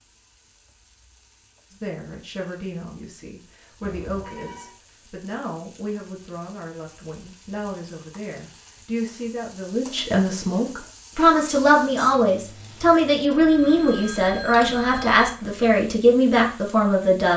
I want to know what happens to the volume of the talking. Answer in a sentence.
The volume of the talking goes up.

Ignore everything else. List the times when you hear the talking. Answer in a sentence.
The talking can be heard from 1.7 to 17.3 s.